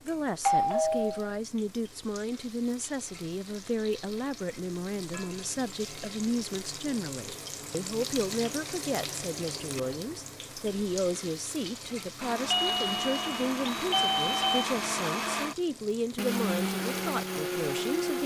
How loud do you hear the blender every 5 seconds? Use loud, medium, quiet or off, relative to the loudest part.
off, off, loud, loud.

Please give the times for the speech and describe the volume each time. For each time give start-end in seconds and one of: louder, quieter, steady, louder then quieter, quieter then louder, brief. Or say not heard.
0.1-18.2 steady.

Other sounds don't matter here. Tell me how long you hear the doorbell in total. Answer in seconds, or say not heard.
3 s.